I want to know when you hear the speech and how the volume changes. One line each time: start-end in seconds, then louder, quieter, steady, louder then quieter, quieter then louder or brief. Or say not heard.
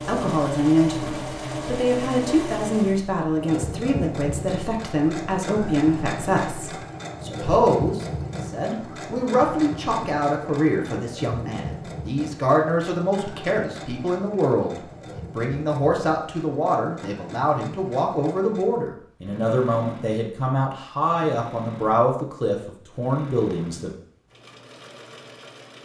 0.0-23.9 steady.